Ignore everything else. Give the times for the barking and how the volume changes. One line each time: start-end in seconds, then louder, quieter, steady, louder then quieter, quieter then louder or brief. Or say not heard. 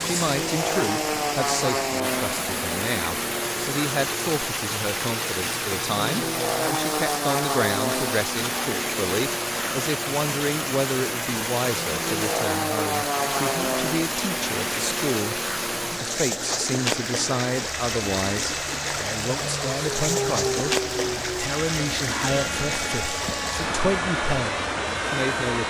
not heard.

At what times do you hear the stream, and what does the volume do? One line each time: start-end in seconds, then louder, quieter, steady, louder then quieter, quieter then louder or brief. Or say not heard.
0.0-25.6 steady.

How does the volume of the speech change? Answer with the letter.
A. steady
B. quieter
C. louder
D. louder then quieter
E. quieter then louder
A.